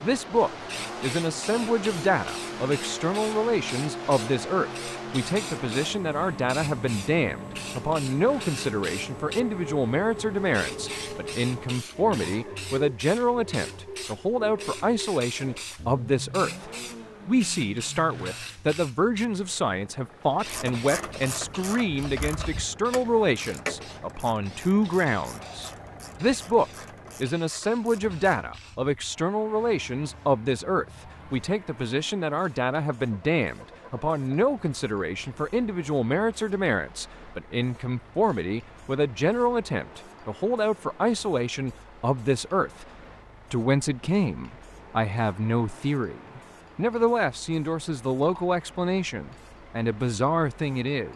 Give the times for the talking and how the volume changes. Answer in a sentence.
The talking can be heard from 0.0 to 42.9 s, at a steady volume; and from 43.5 to 51.1 s, at a steady volume.